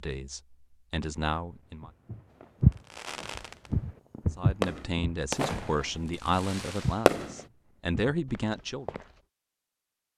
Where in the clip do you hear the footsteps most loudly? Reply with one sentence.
The loudest moment of the footsteps is at 3 seconds.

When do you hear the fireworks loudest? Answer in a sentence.
The loudest moment of the fireworks is at 7 seconds.